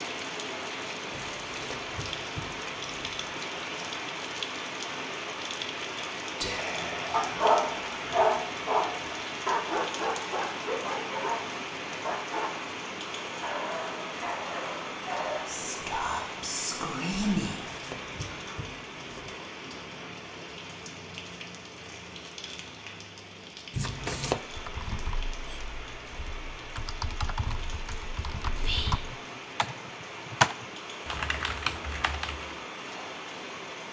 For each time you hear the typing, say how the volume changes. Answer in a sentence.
The typing can be heard from 24.5 to 32.6 s, getting louder then quieter.